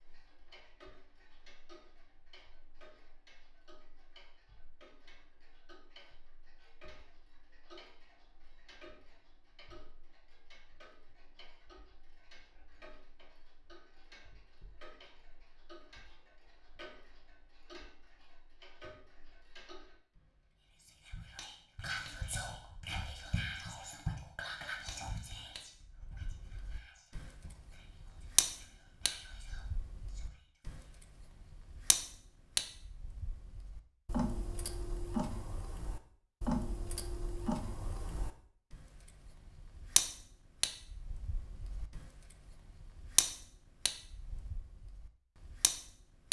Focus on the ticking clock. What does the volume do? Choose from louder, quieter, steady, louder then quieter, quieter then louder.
louder.